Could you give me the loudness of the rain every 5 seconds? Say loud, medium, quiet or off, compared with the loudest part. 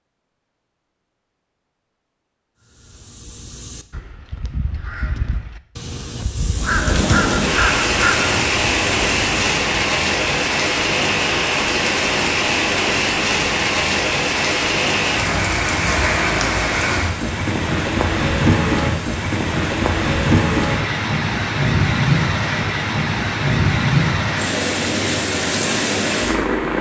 off, loud, loud, loud, loud, loud.